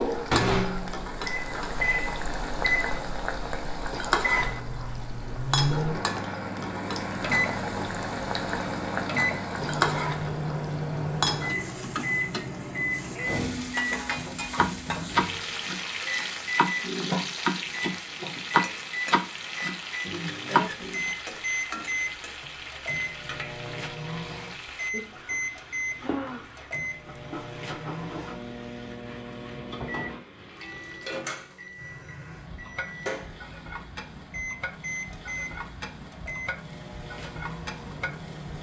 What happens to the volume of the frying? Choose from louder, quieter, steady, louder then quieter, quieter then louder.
quieter.